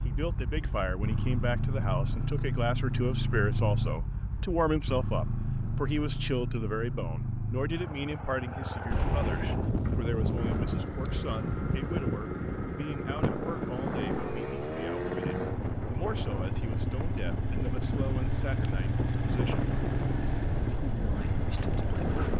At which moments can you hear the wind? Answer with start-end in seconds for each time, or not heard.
8.9-22.3.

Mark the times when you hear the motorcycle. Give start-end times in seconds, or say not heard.
0.0-22.3.